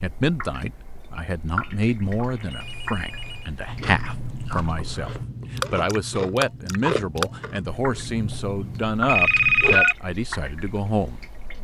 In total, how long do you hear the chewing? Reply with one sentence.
You can hear the chewing for 6 seconds altogether.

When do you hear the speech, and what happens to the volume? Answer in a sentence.
You can hear the speech from 0.0 to 11.2 s, at a steady volume.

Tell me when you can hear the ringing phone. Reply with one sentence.
The ringing phone can be heard from 2.2 to 3.5 s and from 8.8 to 9.9 s.